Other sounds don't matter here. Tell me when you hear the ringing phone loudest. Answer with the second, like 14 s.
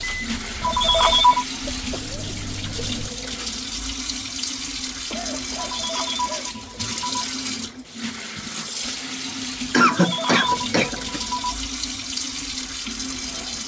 1 s.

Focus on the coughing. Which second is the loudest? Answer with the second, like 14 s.
10 s.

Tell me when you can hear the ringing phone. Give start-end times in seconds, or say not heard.
0.6-1.4, 5.6-7.3, 9.8-11.6.